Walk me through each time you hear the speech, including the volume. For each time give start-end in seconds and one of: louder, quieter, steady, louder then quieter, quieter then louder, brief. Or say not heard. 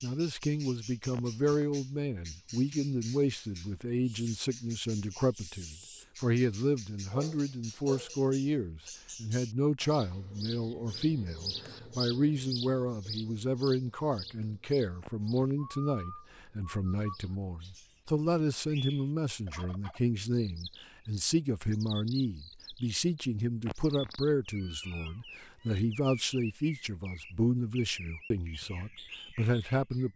0.0-30.1 steady.